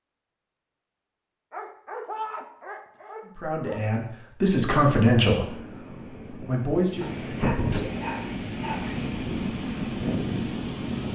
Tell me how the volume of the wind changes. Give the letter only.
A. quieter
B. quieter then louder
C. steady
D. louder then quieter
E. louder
E.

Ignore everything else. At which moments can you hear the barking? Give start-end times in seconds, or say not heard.
1.5-3.8, 7.0-9.1.